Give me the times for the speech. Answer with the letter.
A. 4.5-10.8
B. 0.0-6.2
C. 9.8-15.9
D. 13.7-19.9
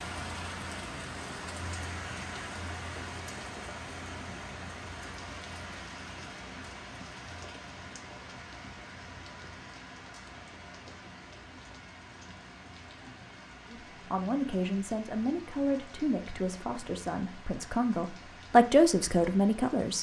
D.